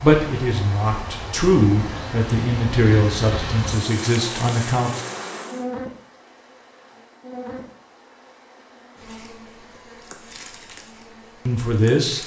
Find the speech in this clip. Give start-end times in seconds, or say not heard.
0.0-5.0, 11.4-12.2.